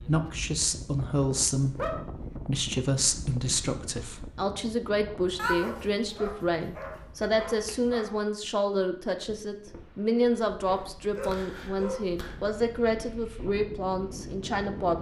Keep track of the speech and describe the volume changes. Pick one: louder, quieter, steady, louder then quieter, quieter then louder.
steady.